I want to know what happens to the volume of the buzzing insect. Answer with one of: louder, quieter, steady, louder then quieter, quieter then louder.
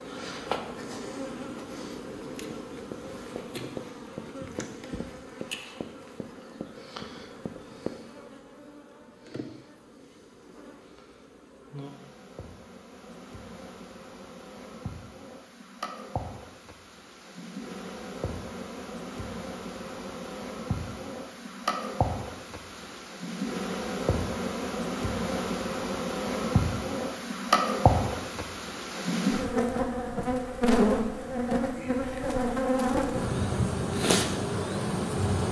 quieter then louder.